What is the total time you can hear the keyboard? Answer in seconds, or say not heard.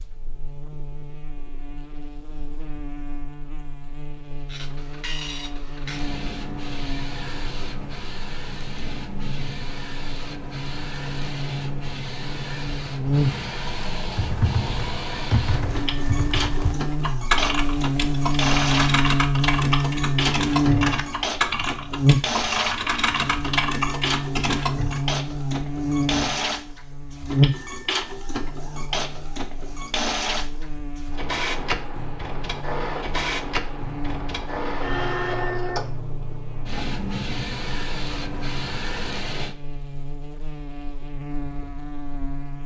11 s.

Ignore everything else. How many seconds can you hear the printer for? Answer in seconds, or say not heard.
35 s.